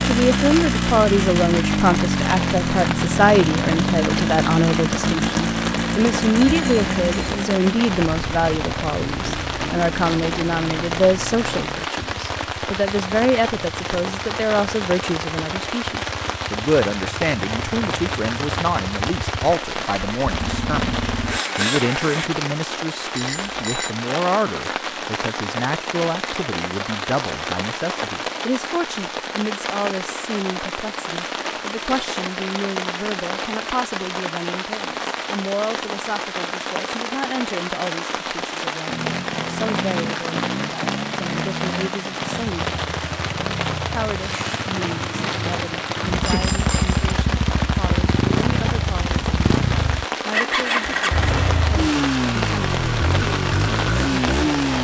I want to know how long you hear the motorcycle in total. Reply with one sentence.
You can hear the motorcycle for 38 seconds altogether.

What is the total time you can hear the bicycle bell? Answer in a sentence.
The bicycle bell can be heard for 3 seconds in total.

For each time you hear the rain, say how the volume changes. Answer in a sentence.
You can hear the rain from 0.0 to 54.7 s, at a steady volume.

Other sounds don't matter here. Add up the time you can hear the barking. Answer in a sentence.
You can't hear the barking here.